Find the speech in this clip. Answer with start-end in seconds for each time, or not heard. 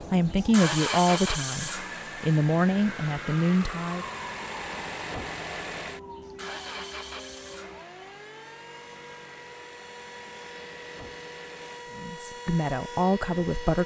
0.0-4.0, 11.9-13.8.